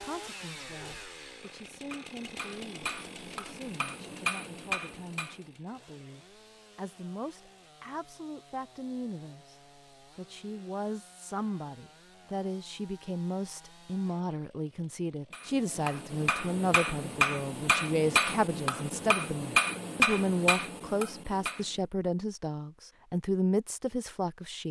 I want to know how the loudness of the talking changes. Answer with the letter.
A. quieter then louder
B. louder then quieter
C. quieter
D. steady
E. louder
E.